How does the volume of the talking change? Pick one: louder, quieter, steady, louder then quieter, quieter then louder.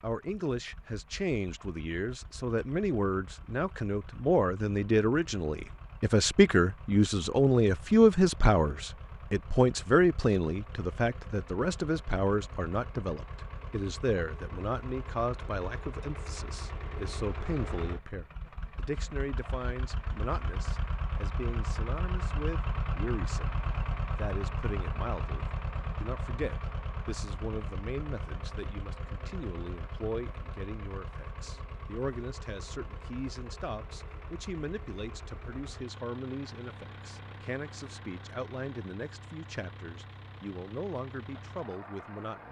quieter.